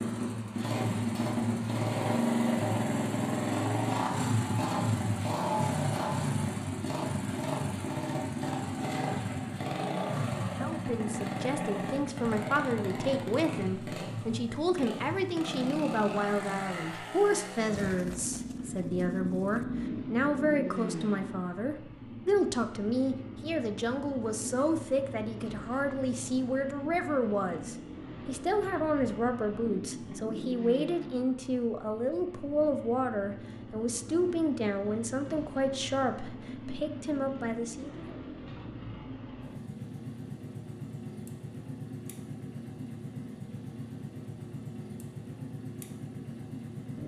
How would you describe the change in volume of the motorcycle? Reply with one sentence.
The loudness of the motorcycle goes down.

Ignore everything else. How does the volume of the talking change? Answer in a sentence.
The volume of the talking stays about the same.